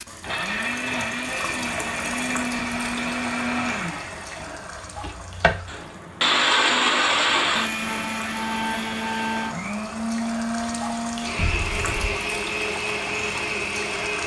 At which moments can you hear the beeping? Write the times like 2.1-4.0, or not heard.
11.3-12.1.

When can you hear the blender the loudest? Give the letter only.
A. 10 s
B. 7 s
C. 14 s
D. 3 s
B.